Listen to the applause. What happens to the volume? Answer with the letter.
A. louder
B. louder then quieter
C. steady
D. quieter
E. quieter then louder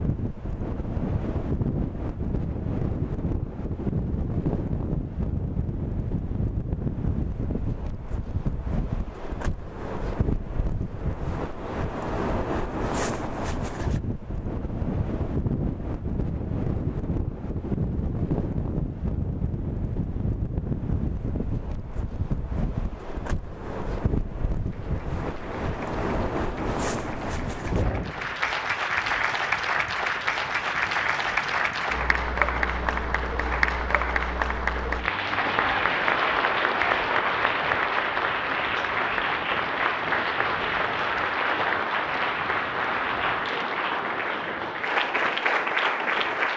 A.